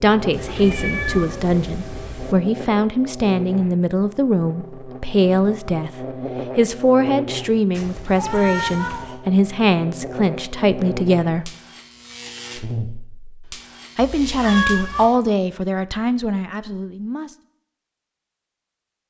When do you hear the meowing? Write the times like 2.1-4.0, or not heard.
0.3-2.4, 7.7-9.2, 14.2-15.1.